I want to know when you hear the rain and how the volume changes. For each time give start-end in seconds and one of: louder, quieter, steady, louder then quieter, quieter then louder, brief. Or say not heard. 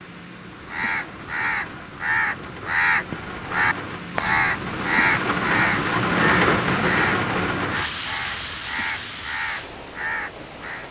0.0-10.8 louder then quieter.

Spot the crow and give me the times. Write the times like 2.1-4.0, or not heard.
0.6-10.8.